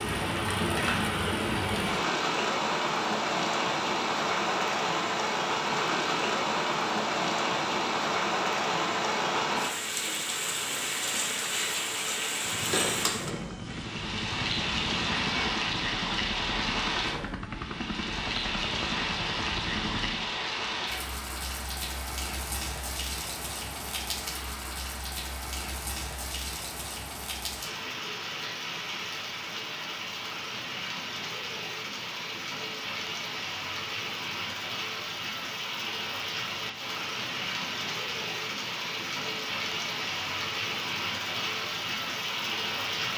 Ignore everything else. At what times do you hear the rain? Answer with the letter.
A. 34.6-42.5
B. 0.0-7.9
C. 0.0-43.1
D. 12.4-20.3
C.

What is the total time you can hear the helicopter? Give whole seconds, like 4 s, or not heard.
8 s.